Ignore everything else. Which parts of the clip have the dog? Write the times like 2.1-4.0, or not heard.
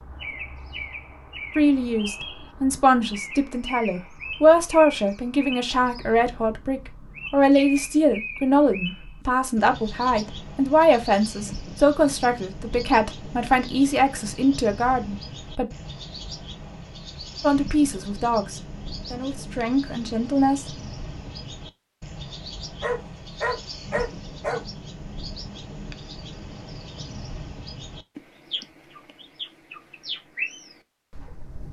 22.8-24.6.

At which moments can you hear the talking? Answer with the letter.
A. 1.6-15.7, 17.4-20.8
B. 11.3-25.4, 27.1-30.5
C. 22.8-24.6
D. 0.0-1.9
A.